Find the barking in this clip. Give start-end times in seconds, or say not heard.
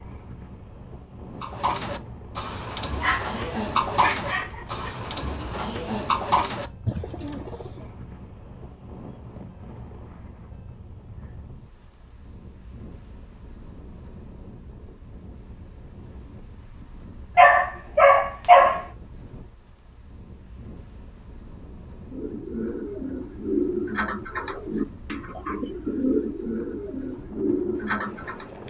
3.0-4.9, 17.4-18.9.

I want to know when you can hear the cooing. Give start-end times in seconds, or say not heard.
1.4-7.9, 22.1-28.5.